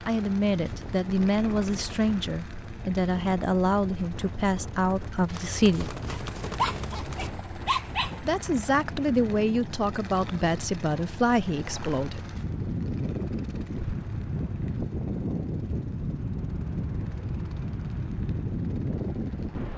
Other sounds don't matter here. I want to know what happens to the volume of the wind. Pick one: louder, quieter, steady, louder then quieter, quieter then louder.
louder.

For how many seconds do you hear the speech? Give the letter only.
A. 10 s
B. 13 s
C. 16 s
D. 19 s
A.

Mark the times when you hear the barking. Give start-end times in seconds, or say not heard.
6.1-8.2.